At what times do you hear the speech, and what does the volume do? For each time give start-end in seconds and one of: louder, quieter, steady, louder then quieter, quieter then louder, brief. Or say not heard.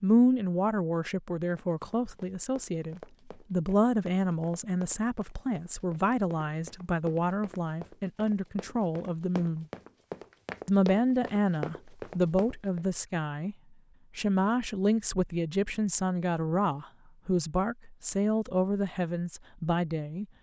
0.0-9.7 steady
10.7-13.6 brief
14.2-20.2 steady.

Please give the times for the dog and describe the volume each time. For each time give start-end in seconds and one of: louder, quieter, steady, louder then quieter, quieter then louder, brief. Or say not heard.
not heard.